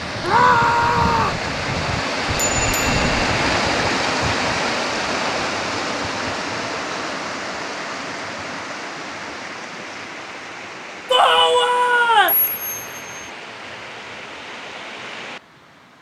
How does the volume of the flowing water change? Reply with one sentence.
The loudness of the flowing water goes down.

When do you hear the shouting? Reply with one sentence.
The shouting can be heard from 0.2 to 1.4 s and from 11.1 to 12.3 s.